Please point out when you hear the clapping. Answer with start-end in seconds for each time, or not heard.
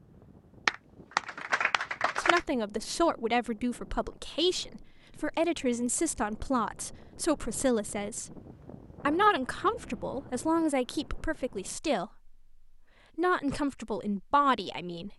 0.7-2.5.